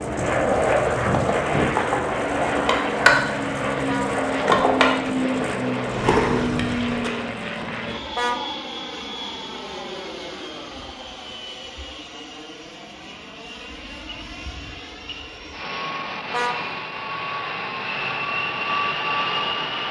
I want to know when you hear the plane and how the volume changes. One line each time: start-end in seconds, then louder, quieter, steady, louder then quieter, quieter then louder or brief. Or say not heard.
0.0-19.8 quieter then louder.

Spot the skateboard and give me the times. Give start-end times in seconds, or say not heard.
0.0-7.1.